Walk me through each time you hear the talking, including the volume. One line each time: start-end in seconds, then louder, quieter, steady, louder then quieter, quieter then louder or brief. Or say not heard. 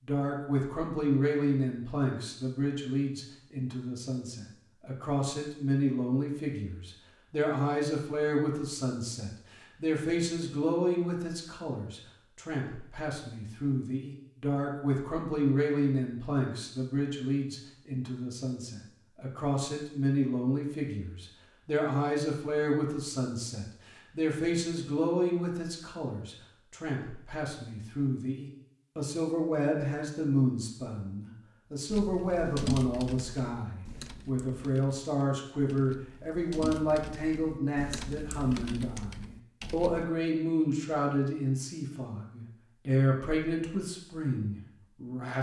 0.1-45.3 steady.